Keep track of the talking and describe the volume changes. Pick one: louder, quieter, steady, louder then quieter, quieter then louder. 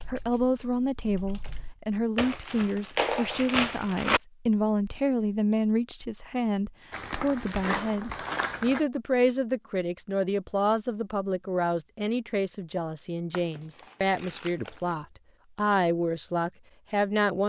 steady.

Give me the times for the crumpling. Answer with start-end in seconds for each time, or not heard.
2.1-4.2, 6.9-8.8, 13.3-14.9.